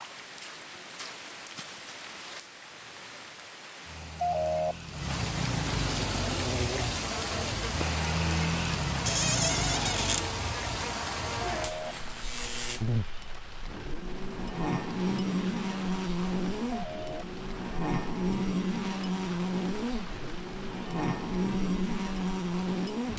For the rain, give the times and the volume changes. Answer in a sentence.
You can hear the rain from 0.0 to 23.1 s, getting louder then quieter.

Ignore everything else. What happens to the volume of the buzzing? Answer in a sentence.
The loudness of the buzzing goes up.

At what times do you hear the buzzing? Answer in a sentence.
You can hear the buzzing from 6.1 to 23.1 s.